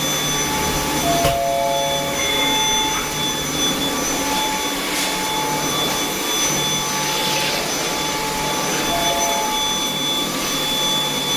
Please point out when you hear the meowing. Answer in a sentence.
You can't hear the meowing here.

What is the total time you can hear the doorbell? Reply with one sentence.
You can hear the doorbell for 2 seconds altogether.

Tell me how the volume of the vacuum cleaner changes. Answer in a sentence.
The loudness of the vacuum cleaner stays about the same.